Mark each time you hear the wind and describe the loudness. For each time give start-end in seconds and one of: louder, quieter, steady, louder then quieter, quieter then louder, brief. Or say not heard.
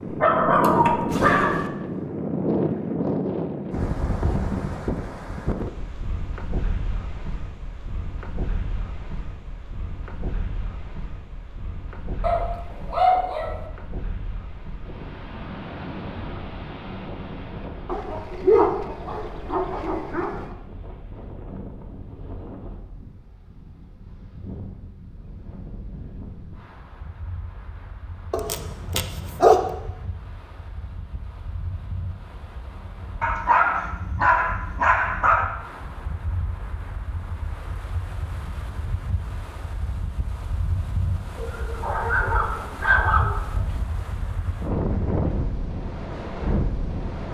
0.0-47.2 quieter then louder.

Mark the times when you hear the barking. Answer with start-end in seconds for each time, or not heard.
0.1-1.7, 12.2-13.6, 17.9-20.4, 28.3-29.8, 33.2-35.5, 41.4-43.8.